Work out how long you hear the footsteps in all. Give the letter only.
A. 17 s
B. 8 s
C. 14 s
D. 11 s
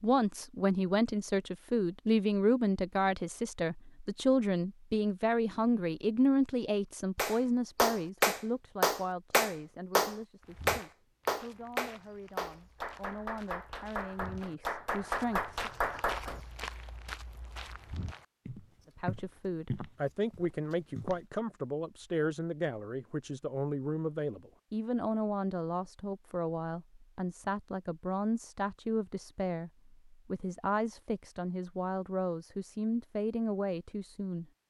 D.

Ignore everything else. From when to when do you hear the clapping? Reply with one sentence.
You can hear the clapping from 7.2 to 16.6 s.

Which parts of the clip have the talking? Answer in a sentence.
The talking can be heard from 0.0 to 15.7 s and from 18.9 to 34.5 s.